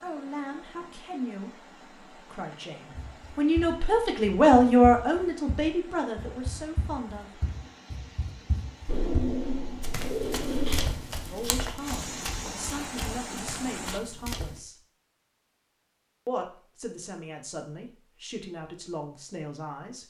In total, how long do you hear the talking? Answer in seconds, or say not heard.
15 s.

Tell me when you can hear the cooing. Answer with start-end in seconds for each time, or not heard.
8.8-10.9.